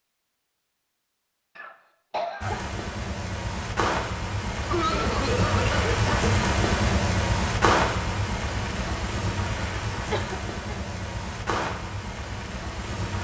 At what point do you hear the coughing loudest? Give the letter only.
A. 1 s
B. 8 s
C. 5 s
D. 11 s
C.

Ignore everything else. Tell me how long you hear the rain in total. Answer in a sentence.
The rain can be heard for 11 seconds in total.